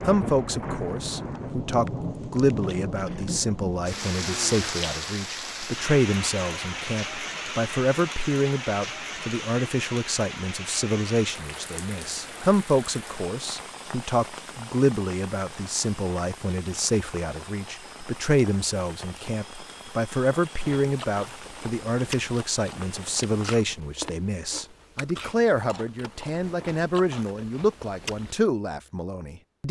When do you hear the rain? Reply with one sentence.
The rain can be heard from 0.0 to 23.6 s.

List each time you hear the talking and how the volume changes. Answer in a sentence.
You can hear the talking from 0.1 to 29.6 s, at a steady volume.